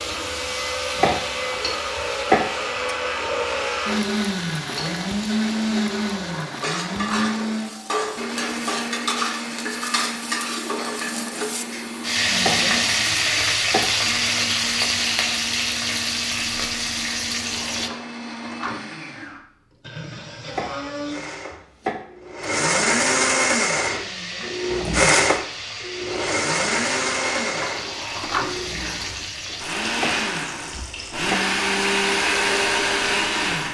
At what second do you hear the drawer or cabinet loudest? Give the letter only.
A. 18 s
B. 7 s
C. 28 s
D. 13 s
C.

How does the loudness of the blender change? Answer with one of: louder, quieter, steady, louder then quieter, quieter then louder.
quieter then louder.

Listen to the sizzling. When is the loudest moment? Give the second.
13 s.